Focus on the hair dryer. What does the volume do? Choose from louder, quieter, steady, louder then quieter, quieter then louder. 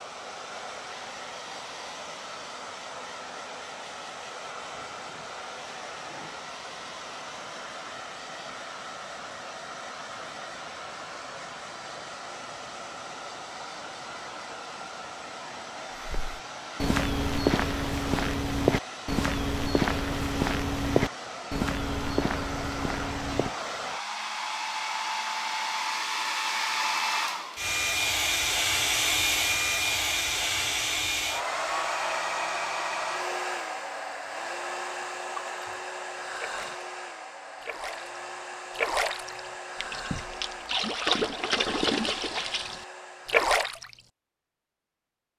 louder then quieter.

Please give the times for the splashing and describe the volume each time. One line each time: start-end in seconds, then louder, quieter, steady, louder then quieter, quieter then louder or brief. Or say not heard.
35.5-36.8 brief
37.6-43.9 quieter then louder.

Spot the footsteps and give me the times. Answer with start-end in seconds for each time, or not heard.
16.1-23.5.